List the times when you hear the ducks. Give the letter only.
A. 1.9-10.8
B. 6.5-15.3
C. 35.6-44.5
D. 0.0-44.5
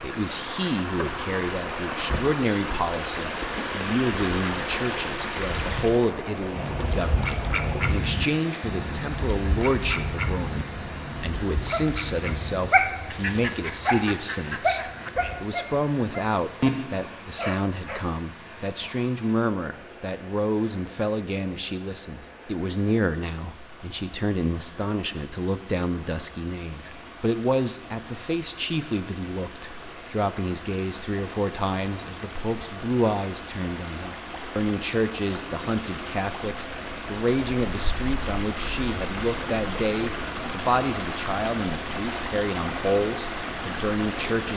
B.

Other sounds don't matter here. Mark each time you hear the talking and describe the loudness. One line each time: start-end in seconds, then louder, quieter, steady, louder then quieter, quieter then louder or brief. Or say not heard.
0.0-44.5 steady.